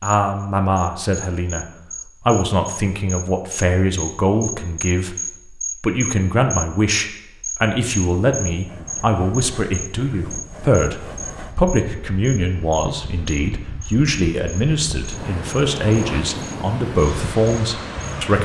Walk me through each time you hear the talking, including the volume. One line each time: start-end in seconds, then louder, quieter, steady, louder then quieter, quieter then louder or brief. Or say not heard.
0.0-1.6 brief
2.2-18.4 steady.